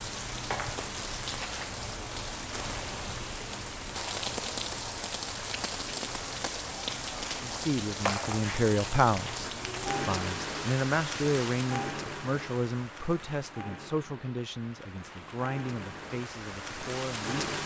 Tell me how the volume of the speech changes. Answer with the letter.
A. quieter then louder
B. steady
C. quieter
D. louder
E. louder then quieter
C.